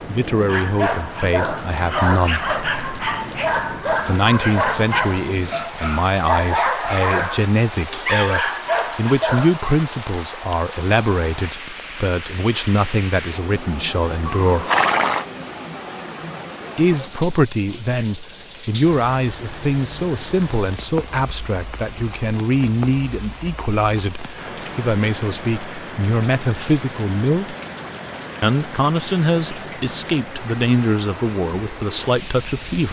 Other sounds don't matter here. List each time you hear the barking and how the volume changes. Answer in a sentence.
You can hear the barking from 0.5 to 9.7 s, at a steady volume.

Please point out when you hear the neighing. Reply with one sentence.
You can hear the neighing from 14.2 to 15.2 s.